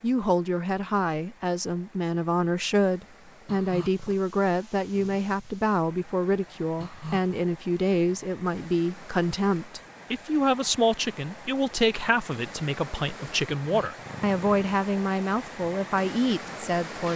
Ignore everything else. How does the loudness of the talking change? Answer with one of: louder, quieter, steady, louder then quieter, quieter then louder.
steady.